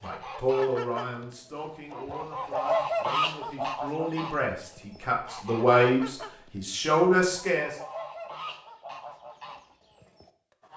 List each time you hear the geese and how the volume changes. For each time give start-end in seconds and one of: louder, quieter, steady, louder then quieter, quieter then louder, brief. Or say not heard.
0.0-10.7 louder then quieter.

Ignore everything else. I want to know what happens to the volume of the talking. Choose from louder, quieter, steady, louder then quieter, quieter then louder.
quieter then louder.